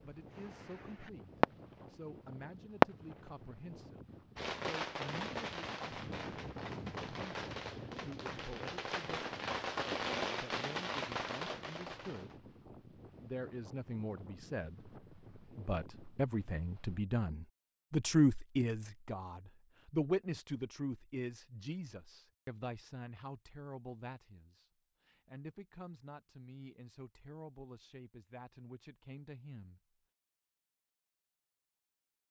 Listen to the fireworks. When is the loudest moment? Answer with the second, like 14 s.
3 s.